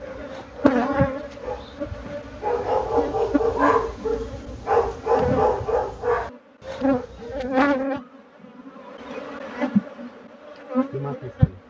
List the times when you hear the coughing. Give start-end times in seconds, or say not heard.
not heard.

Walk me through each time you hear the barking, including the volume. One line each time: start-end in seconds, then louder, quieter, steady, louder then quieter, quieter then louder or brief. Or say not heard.
0.0-7.8 louder then quieter.